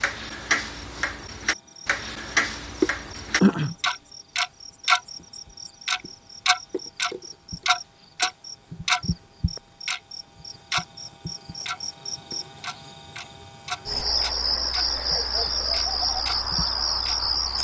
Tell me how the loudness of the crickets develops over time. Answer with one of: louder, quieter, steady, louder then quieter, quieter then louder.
quieter then louder.